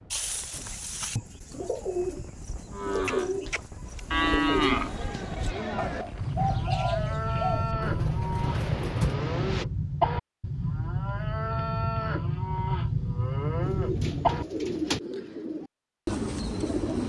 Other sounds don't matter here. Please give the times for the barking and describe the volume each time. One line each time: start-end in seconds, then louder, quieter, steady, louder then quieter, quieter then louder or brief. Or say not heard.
not heard.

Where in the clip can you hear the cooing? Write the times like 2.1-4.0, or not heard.
0.1-9.2, 13.6-17.0.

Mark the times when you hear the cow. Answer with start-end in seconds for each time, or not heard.
2.7-14.4.